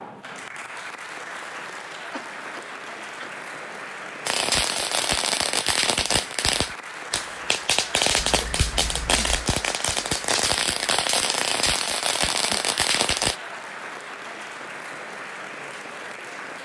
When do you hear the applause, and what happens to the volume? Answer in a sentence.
You can hear the applause from 0.0 to 16.6 s, at a steady volume.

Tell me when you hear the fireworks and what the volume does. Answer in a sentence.
The fireworks can be heard from 4.2 to 13.3 s, at a steady volume.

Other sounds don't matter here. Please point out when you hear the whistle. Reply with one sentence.
The whistle can't be heard in this clip.